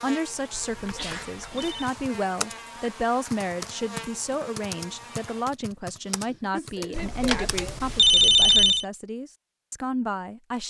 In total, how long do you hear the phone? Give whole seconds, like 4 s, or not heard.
3 s.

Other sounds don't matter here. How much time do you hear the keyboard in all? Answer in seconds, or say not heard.
7 s.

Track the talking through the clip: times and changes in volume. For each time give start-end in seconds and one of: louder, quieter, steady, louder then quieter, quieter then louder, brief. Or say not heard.
0.0-10.6 steady.